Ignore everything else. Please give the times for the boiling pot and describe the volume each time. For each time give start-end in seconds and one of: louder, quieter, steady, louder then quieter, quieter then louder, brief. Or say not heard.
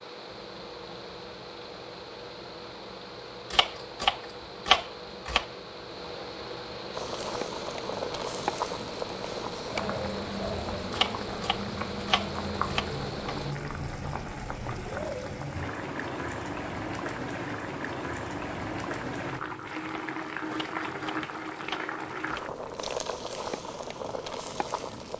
6.9-25.1 steady.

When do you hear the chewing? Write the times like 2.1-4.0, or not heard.
not heard.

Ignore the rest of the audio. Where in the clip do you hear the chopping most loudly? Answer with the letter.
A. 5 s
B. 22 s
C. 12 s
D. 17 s
A.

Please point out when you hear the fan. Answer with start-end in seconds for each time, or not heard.
0.0-13.6.